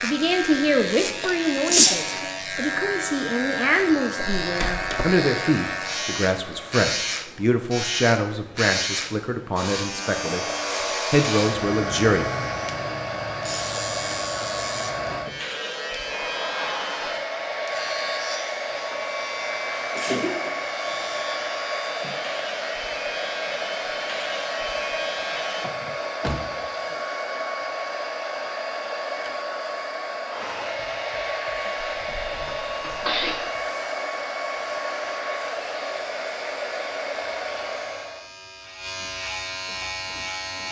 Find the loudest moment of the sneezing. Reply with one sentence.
The loudest moment of the sneezing is at 2 seconds.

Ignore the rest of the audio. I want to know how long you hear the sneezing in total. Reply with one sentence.
The sneezing can be heard for 4 seconds in total.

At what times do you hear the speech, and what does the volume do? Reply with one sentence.
You can hear the speech from 0.0 to 12.2 s, at a steady volume.